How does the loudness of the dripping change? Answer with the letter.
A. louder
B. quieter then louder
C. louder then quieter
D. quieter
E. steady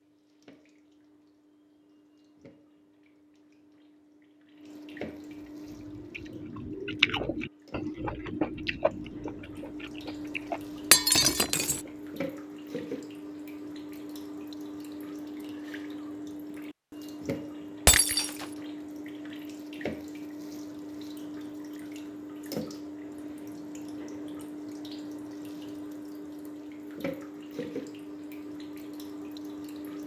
A.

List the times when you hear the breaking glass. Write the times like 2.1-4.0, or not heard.
10.9-11.8, 17.9-18.4.